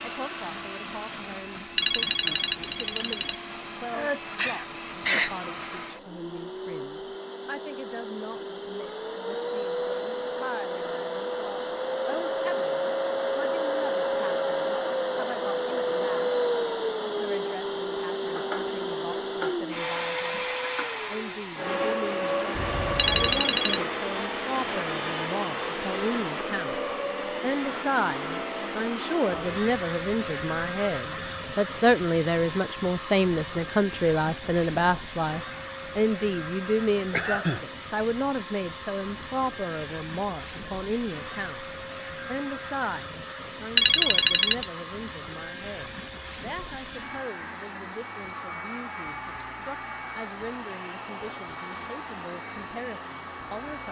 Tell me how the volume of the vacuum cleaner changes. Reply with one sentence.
The loudness of the vacuum cleaner goes up, then down.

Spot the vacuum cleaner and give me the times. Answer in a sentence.
You can hear the vacuum cleaner from 0.0 to 53.8 s.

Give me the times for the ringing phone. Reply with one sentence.
The ringing phone can be heard from 1.8 to 3.4 s, from 22.9 to 23.8 s and from 43.8 to 44.6 s.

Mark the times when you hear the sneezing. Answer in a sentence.
You can hear the sneezing from 3.9 to 5.3 s, from 22.5 to 23.4 s and from 37.1 to 37.6 s.